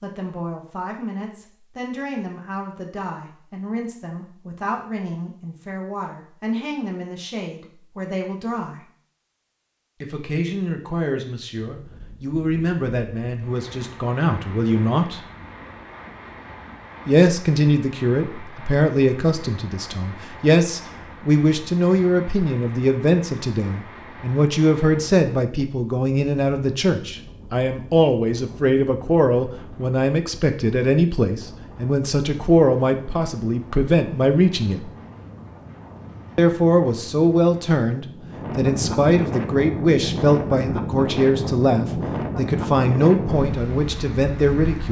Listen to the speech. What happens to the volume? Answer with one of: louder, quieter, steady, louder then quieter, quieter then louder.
louder.